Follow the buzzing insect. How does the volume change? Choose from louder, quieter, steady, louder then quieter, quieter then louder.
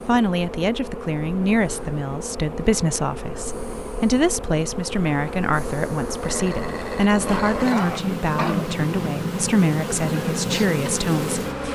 louder.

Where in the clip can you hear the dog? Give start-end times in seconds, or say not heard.
6.2-8.8.